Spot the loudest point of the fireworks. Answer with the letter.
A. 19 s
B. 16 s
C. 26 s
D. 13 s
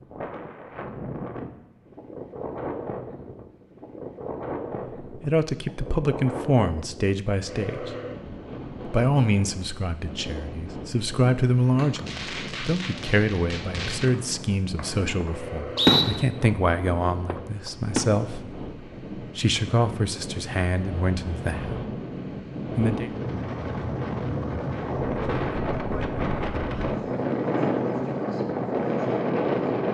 B.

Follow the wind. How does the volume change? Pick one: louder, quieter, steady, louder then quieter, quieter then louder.
louder.